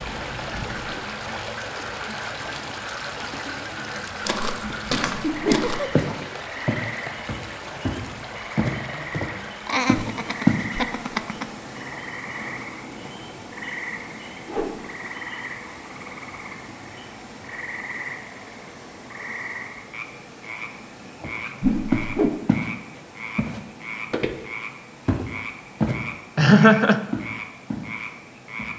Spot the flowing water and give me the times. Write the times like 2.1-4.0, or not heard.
0.0-28.7.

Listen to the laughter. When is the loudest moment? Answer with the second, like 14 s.
27 s.